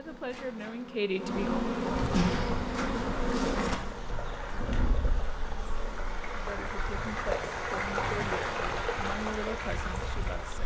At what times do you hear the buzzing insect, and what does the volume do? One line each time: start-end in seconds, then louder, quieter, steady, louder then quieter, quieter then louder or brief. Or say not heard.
0.0-10.6 quieter.